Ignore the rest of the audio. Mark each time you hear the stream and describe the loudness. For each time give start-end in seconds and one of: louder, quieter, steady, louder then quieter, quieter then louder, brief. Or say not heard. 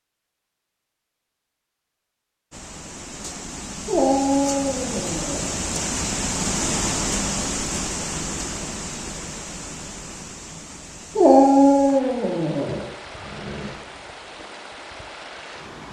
2.5-15.8 louder then quieter.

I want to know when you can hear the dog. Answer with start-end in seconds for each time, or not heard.
3.9-5.5, 11.2-13.7.